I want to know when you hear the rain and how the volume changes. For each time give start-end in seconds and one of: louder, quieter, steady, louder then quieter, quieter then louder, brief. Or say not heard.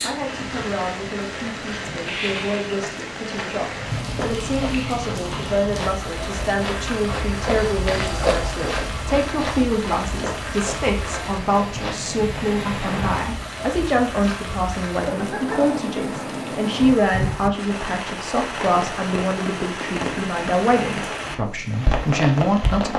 0.0-22.9 steady.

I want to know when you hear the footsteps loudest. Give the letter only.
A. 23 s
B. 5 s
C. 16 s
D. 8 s
D.